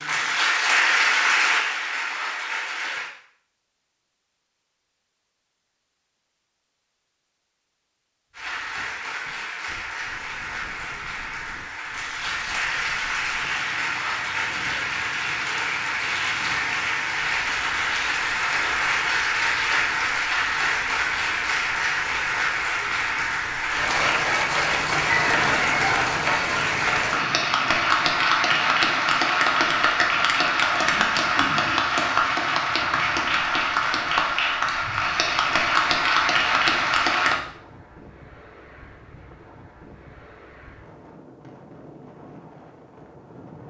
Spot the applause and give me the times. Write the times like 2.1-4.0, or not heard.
0.0-3.1, 8.3-37.4.